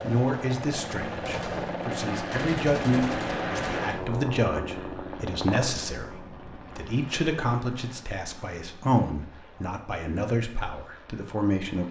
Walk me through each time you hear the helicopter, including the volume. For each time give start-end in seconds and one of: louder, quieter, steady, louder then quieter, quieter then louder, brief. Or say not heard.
0.0-11.8 quieter.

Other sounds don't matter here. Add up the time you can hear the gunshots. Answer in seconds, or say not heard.
3 s.